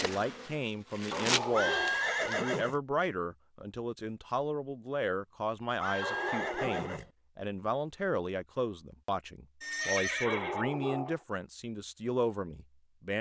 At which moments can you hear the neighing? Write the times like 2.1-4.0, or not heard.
1.5-2.8, 5.8-7.1, 9.6-10.7.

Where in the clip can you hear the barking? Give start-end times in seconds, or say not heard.
1.1-2.1, 6.0-7.0, 10.2-11.2.